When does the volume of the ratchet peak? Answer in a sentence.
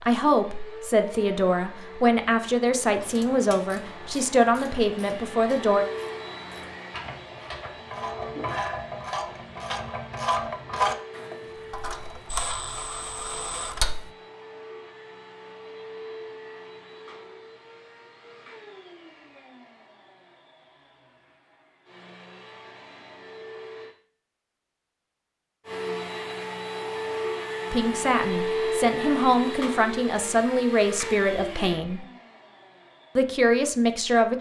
The loudest moment of the ratchet is at 11 seconds.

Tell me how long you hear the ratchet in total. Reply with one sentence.
You can hear the ratchet for 11 seconds altogether.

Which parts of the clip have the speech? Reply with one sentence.
The speech can be heard from 0.0 to 5.8 s, from 27.7 to 32.0 s and from 33.1 to 34.3 s.